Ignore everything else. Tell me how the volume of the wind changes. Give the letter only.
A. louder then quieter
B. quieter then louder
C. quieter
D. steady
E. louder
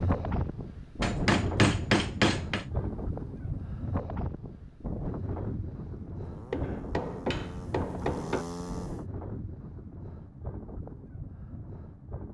C.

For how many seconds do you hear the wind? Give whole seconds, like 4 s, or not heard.
12 s.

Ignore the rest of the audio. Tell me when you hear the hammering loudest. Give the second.
2 s.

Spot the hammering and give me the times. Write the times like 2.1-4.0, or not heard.
1.0-2.6, 6.5-8.4.